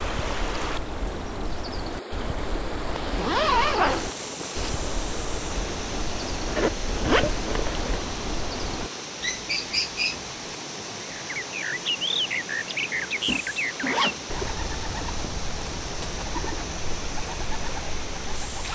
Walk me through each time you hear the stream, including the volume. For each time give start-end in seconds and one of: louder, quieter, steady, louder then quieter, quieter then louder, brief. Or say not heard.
0.0-18.6 steady.